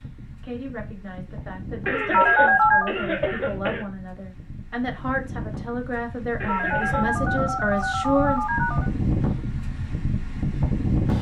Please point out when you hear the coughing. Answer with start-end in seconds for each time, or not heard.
1.9-3.9, 6.4-7.1.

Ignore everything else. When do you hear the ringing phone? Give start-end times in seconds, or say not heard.
2.1-3.0, 6.5-8.9.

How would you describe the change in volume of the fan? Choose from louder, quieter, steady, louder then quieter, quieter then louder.
louder.